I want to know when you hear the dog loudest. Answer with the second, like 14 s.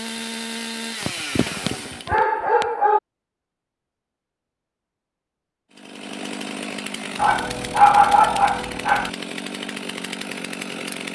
8 s.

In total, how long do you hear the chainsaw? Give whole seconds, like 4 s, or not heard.
8 s.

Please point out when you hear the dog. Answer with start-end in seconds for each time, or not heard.
1.0-3.0, 7.2-9.1.